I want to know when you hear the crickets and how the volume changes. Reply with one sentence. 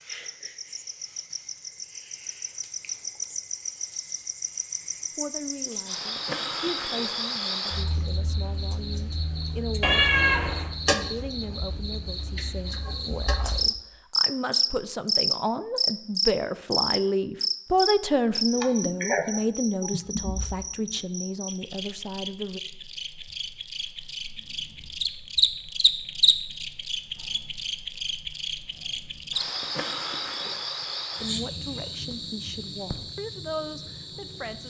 You can hear the crickets from 0.0 to 34.6 s, getting louder then quieter.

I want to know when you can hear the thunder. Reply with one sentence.
The thunder can't be heard in this clip.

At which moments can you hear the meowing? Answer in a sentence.
The meowing can be heard from 9.8 to 10.7 s.